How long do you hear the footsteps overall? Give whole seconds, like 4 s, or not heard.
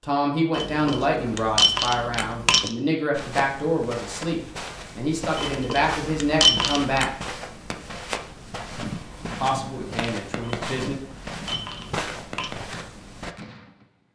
10 s.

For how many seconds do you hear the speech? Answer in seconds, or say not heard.
9 s.